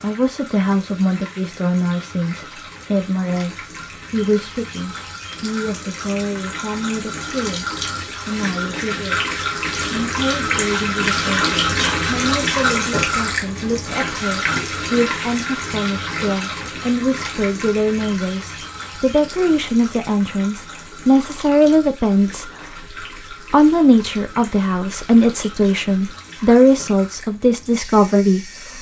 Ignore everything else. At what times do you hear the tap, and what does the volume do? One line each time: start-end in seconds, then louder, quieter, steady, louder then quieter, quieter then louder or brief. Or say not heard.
0.0-28.7 louder then quieter.